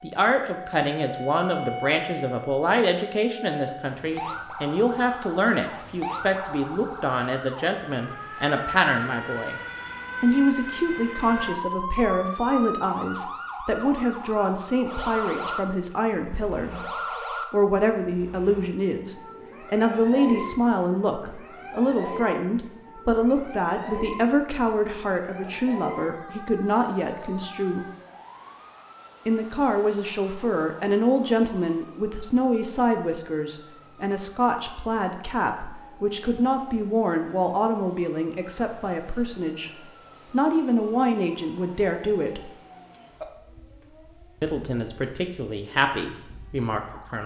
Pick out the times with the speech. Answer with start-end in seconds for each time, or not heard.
0.0-9.6, 10.2-16.9, 17.5-27.9, 29.2-42.5, 44.4-47.2.